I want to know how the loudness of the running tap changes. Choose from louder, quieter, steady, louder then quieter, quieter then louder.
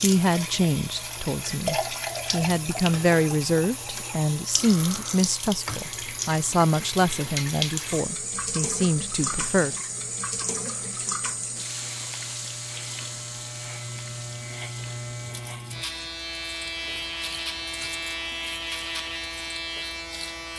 quieter.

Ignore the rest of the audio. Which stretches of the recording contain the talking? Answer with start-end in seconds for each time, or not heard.
0.0-9.8.